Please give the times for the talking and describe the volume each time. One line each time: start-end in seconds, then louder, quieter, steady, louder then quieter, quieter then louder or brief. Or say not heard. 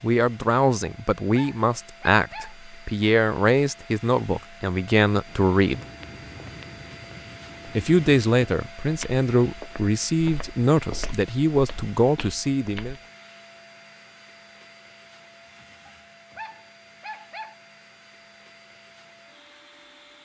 0.0-5.8 steady
7.8-12.9 steady.